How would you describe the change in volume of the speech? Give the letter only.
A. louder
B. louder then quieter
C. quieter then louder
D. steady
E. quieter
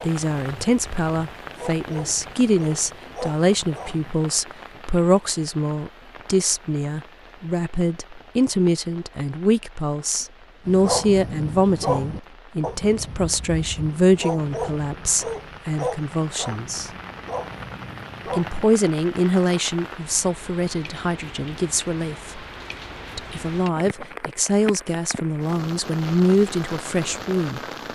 D.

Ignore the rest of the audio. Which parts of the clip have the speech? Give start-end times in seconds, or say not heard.
0.0-16.9, 18.3-22.4, 23.1-27.6.